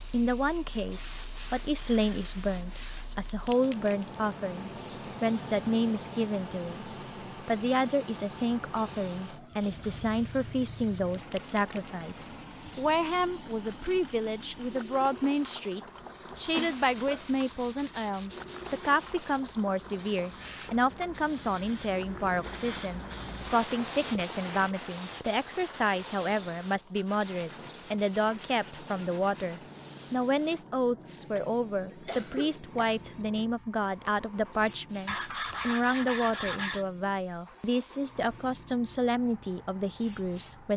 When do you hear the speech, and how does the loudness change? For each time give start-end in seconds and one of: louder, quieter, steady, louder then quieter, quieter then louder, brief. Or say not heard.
0.1-40.7 steady.